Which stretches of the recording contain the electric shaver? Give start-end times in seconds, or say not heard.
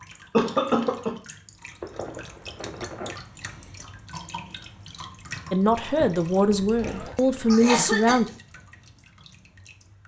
not heard.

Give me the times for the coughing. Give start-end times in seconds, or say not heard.
0.3-1.1, 7.5-8.2.